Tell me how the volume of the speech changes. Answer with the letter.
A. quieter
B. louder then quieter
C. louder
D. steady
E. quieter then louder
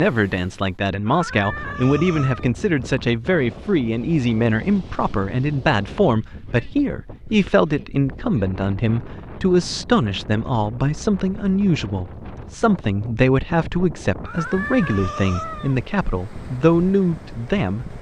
D.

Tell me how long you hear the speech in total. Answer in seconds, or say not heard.
18 s.